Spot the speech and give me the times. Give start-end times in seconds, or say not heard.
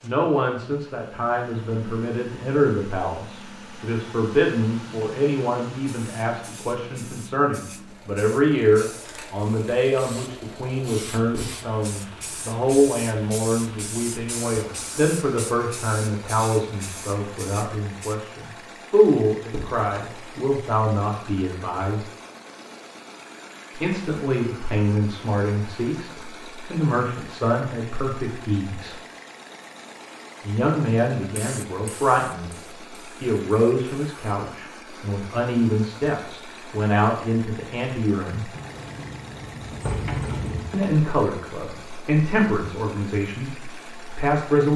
0.0-22.1, 23.8-28.9, 30.4-32.5, 33.2-38.5, 40.7-44.7.